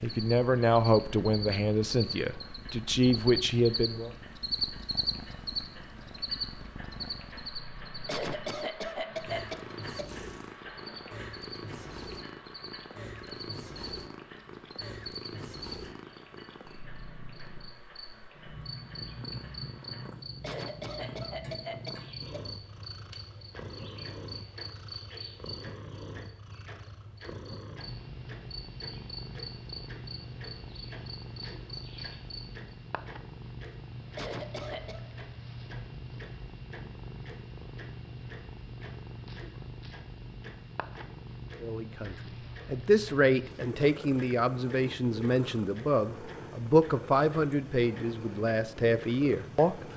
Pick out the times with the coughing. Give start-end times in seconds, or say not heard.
8.1-10.1, 20.4-22.4, 34.1-35.1.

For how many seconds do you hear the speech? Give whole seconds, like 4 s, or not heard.
12 s.